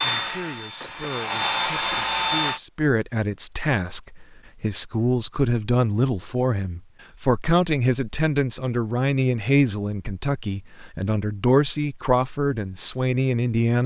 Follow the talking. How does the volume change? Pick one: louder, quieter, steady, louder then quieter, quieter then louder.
louder.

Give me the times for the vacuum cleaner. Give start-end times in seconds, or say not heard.
0.0-2.6.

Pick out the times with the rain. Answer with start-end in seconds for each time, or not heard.
not heard.